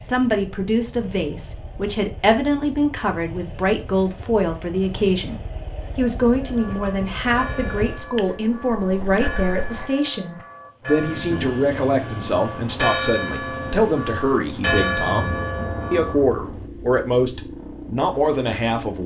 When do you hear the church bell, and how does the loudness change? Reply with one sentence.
You can hear the church bell from 6.4 to 16.1 s, getting louder.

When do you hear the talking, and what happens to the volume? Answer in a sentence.
The talking can be heard from 0.1 to 19.0 s, at a steady volume.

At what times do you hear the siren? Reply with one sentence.
You can't hear the siren here.